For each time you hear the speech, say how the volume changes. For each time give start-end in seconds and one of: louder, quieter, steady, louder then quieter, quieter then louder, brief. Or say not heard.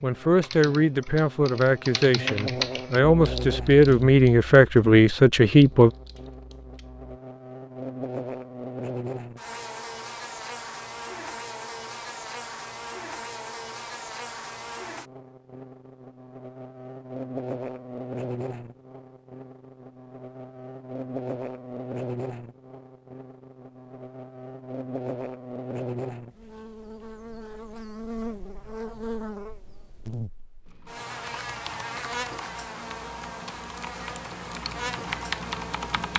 0.0-5.9 louder.